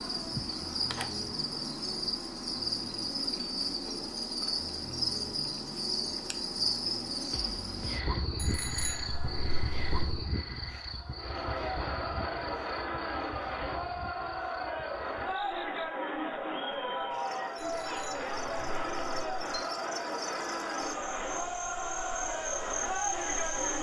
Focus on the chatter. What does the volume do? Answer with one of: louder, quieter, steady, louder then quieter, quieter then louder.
steady.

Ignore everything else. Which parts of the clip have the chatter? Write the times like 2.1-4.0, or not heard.
11.2-23.7.